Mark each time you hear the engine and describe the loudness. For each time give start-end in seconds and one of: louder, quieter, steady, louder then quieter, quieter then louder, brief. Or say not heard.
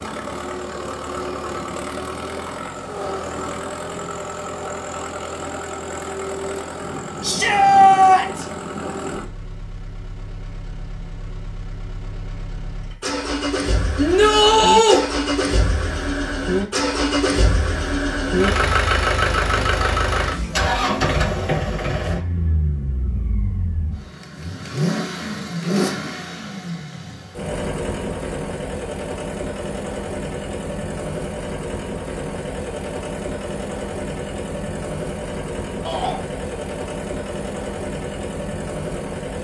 0.0-39.3 louder then quieter.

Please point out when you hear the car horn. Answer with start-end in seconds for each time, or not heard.
not heard.